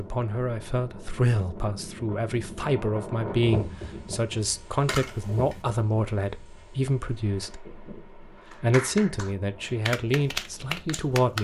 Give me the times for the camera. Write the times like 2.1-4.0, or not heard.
4.8-5.6.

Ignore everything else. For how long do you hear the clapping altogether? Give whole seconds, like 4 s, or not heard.
3 s.